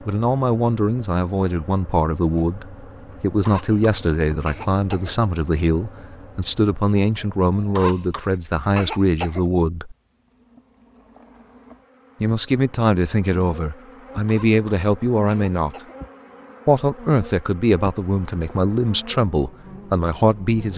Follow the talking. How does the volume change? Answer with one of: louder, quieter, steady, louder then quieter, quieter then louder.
steady.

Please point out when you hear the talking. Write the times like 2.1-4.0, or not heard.
0.1-9.9, 12.2-15.8, 16.6-20.7.